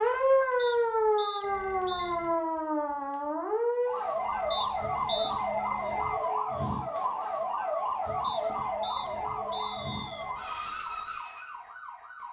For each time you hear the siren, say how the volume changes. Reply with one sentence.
You can hear the siren from 0.0 to 12.2 s, getting quieter.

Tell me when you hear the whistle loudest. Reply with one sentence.
The loudest moment of the whistle is at 5 seconds.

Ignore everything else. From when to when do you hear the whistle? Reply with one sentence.
The whistle can be heard from 0.6 to 2.1 s, from 4.5 to 5.3 s and from 8.2 to 10.2 s.